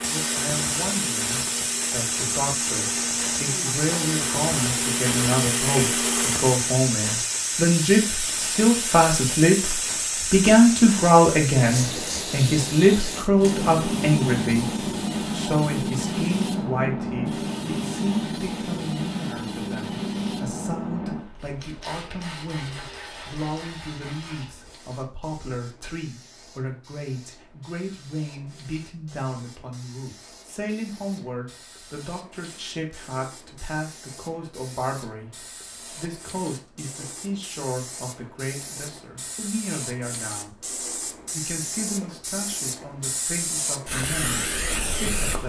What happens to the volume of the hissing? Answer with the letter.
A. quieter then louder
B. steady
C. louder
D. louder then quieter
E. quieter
A.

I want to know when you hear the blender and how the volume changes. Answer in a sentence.
You can hear the blender from 0.0 to 6.8 s, getting louder.